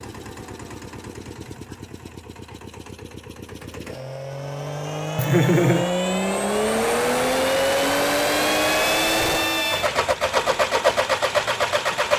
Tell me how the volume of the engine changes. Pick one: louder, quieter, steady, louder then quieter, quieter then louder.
louder.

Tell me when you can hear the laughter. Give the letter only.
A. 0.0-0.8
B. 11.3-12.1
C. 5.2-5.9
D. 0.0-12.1
C.